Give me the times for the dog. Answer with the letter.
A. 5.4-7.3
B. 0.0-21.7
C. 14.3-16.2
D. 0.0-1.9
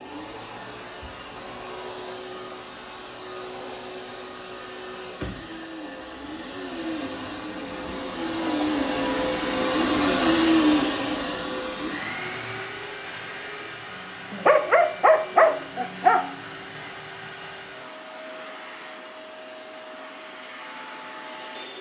C.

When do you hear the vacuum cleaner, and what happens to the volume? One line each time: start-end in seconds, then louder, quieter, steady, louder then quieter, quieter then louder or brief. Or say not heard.
0.0-21.7 louder then quieter.